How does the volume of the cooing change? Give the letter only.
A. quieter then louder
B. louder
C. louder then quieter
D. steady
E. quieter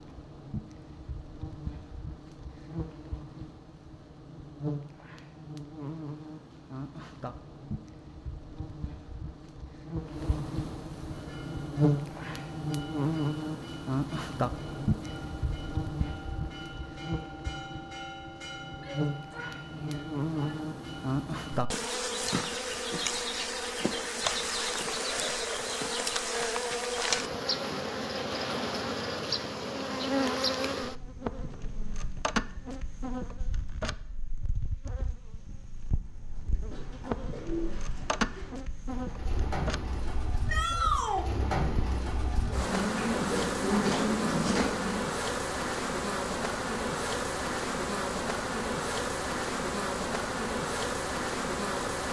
B.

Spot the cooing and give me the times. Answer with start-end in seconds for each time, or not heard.
35.9-45.0.